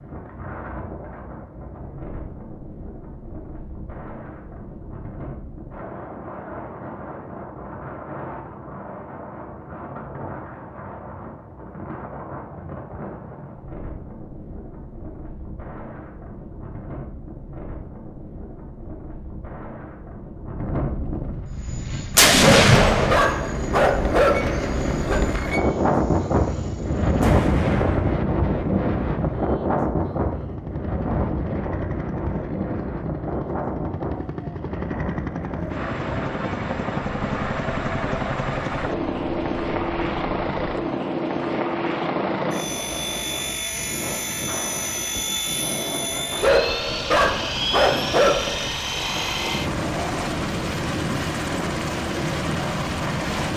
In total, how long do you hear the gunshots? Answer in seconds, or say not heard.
2 s.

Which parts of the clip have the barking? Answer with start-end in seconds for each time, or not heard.
22.4-25.2, 46.4-48.7.